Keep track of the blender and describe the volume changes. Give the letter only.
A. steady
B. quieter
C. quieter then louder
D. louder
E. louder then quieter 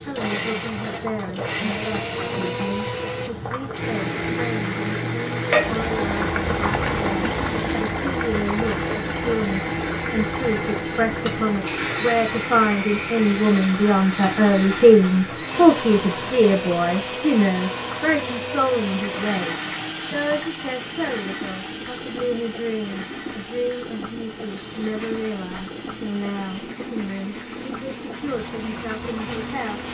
B.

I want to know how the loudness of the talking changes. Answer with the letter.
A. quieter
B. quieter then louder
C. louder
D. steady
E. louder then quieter
E.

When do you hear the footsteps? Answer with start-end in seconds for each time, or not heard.
not heard.